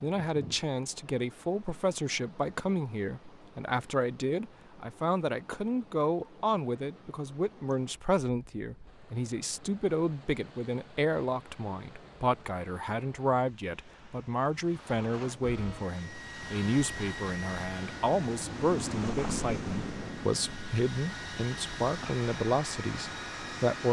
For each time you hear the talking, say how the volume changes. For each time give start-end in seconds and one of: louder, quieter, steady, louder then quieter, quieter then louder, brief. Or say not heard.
0.0-23.8 steady.